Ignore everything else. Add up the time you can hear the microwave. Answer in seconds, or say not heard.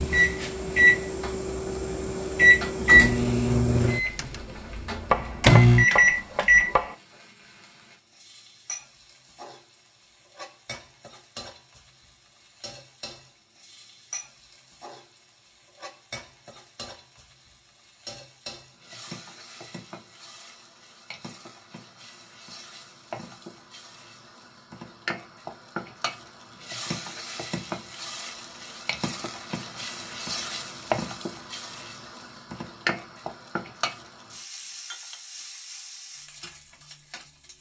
7 s.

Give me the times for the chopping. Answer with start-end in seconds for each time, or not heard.
5.1-7.0.